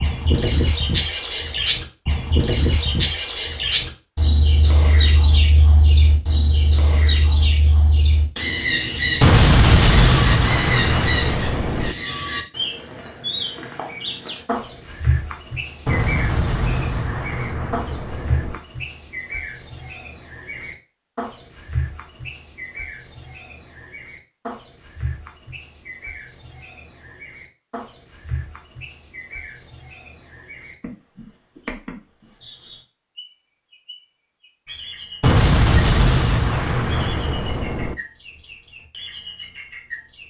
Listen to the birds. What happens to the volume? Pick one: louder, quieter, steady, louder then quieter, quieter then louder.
quieter.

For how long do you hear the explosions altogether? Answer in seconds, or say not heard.
8 s.